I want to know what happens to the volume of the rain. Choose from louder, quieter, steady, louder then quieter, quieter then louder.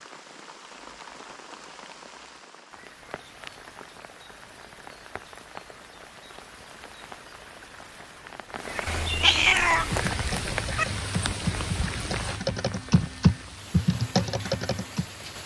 louder then quieter.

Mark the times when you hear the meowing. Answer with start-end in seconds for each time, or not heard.
8.8-10.8.